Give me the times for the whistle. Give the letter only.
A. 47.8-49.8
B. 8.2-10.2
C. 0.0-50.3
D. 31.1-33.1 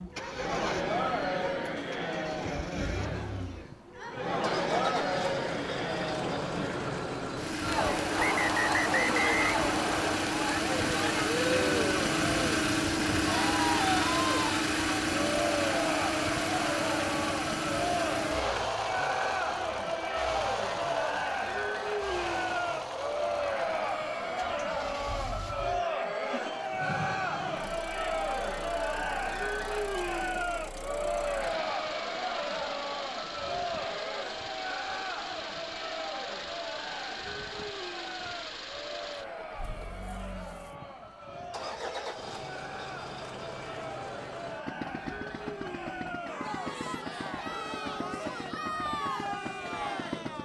B.